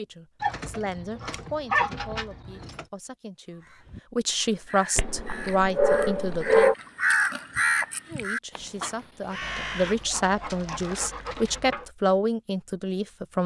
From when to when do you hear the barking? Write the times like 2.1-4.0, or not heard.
0.4-2.9, 5.0-6.8, 9.4-11.9.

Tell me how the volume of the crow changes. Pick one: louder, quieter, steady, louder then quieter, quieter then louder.
louder then quieter.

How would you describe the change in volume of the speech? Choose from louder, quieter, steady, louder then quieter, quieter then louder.
louder.